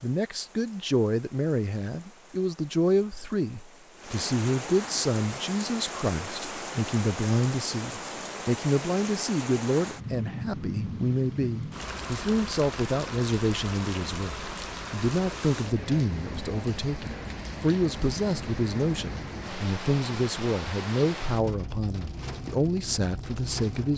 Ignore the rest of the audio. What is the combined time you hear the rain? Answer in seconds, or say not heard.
24 s.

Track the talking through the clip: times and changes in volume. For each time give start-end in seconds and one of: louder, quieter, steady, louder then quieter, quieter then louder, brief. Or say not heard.
0.0-23.9 steady.